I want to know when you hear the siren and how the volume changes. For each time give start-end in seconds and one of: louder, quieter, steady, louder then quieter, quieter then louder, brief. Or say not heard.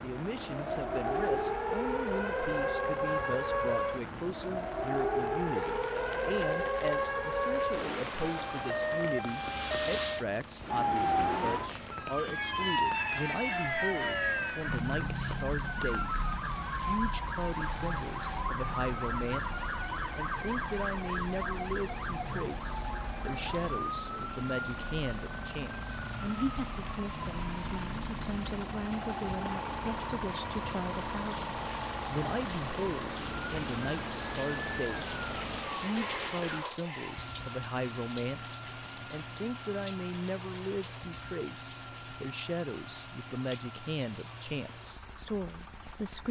0.0-36.0 quieter.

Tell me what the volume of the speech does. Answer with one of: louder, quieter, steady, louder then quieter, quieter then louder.
steady.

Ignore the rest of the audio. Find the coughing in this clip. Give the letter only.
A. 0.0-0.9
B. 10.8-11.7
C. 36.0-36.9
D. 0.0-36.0
C.